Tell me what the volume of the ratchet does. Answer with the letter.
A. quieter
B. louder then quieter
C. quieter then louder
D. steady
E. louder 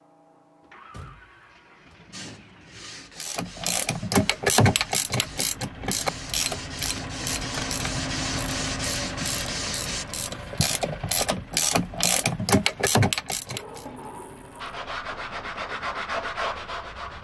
C.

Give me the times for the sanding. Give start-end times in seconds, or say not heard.
2.1-10.1, 14.6-17.1.